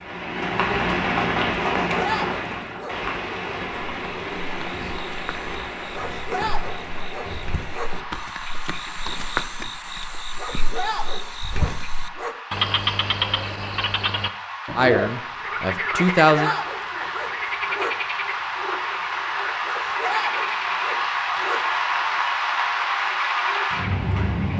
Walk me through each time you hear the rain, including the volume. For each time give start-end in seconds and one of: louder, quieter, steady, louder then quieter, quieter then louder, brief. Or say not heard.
0.0-24.5 quieter then louder.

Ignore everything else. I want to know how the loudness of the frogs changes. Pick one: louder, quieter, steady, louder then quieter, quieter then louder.
louder then quieter.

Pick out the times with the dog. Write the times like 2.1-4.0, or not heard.
1.9-3.0, 5.9-7.9, 10.3-12.3, 15.9-17.9, 19.6-21.6.